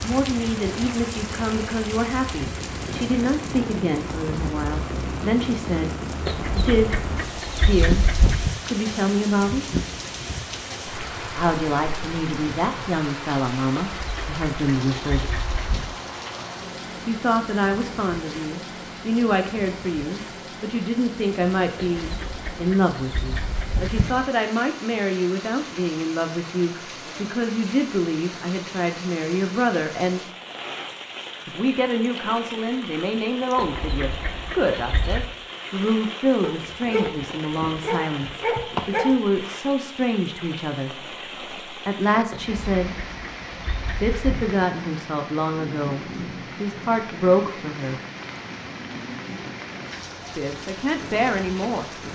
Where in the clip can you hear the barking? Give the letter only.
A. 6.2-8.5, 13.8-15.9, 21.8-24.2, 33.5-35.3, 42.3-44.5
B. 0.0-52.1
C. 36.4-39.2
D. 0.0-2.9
C.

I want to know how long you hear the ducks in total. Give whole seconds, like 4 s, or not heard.
11 s.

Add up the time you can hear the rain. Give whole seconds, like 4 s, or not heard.
52 s.